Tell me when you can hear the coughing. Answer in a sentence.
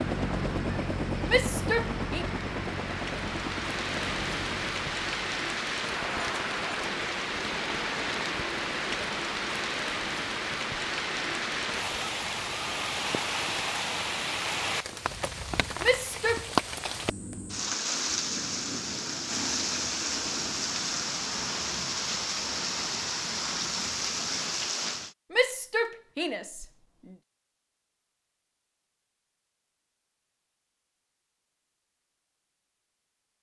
You can't hear the coughing here.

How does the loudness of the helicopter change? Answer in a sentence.
The volume of the helicopter goes down.